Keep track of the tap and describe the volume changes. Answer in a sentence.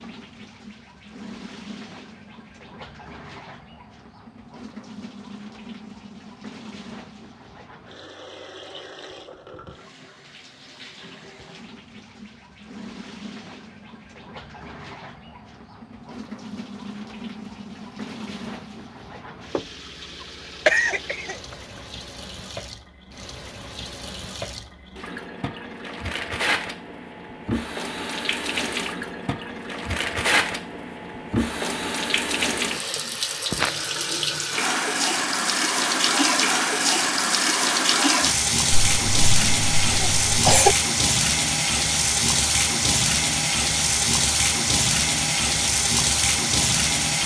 The volume of the tap goes up.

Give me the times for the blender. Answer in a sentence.
You can't hear the blender here.